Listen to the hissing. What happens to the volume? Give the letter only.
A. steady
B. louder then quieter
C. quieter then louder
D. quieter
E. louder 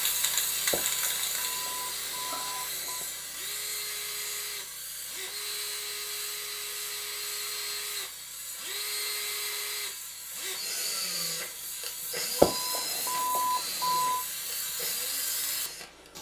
C.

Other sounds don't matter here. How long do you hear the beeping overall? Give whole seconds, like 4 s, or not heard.
4 s.